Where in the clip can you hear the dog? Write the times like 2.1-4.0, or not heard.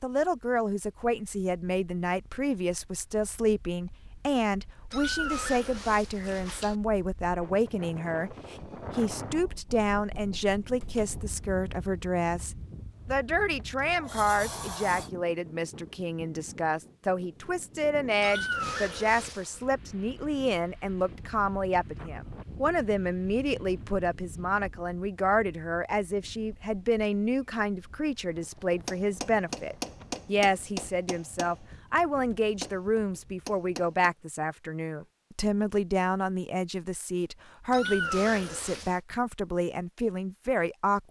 not heard.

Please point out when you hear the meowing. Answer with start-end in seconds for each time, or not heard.
4.9-6.8, 18.2-19.6, 37.7-39.0.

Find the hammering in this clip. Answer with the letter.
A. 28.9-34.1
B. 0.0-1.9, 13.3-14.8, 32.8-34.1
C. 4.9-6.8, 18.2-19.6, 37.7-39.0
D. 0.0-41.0
A.